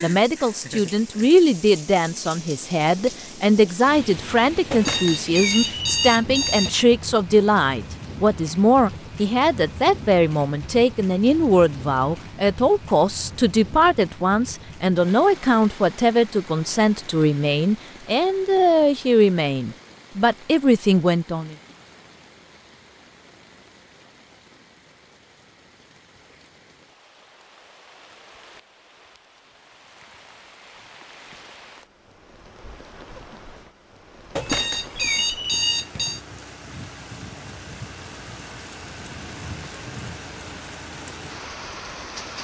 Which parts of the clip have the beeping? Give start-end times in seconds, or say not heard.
4.7-6.7, 34.4-36.2.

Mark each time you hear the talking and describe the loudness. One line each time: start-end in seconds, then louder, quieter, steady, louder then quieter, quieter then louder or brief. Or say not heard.
0.0-21.6 steady.